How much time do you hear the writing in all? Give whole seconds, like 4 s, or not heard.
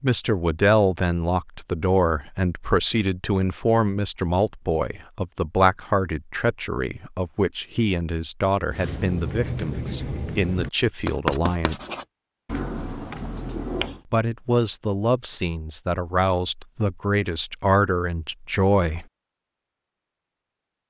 5 s.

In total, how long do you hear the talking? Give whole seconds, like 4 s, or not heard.
17 s.